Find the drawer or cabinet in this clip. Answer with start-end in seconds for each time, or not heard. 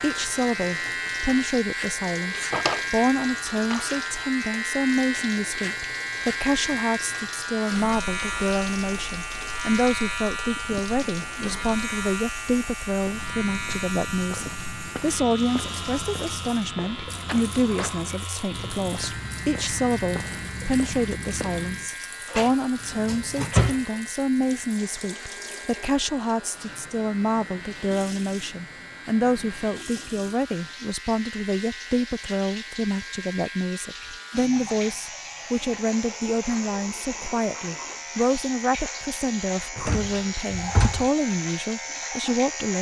2.4-3.9, 22.3-23.8, 39.8-41.1.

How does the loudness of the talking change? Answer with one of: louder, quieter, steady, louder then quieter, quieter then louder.
steady.